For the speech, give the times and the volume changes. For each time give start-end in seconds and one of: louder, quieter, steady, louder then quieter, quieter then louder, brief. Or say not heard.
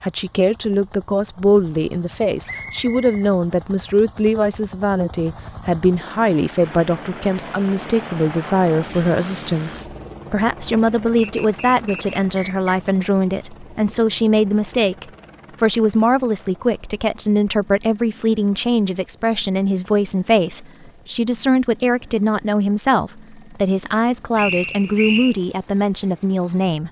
0.0-26.8 steady.